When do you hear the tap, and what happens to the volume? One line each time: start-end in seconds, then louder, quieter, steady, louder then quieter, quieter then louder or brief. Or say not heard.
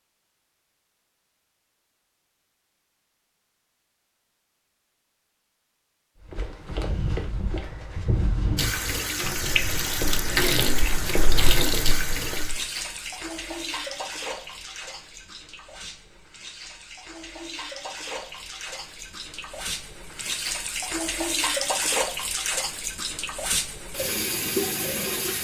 8.6-25.3 quieter then louder.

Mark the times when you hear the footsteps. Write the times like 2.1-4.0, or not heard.
6.2-12.7.